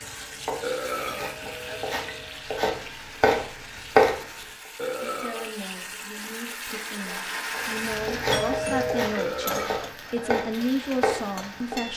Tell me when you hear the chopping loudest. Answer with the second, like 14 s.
4 s.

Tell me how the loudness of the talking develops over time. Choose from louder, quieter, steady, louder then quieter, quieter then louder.
louder.